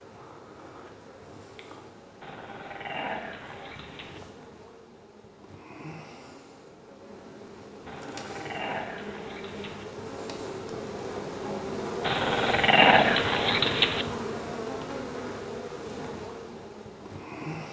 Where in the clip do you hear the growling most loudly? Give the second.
13 s.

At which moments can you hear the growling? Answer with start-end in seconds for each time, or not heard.
2.2-4.2, 7.8-9.8, 12.0-14.1.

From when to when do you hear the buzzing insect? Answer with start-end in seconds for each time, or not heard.
0.0-17.6.